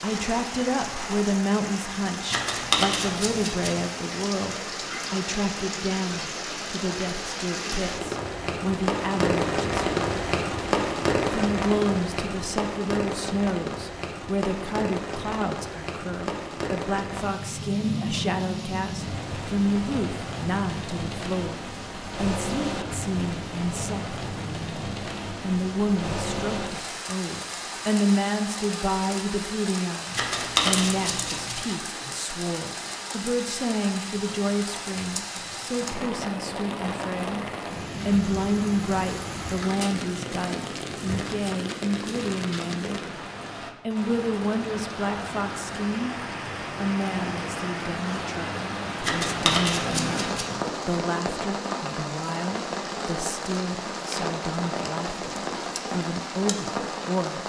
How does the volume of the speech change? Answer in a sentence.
The loudness of the speech stays about the same.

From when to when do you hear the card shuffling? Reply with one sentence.
The card shuffling can be heard from 2.3 to 3.8 s, from 30.1 to 31.6 s and from 49.0 to 50.5 s.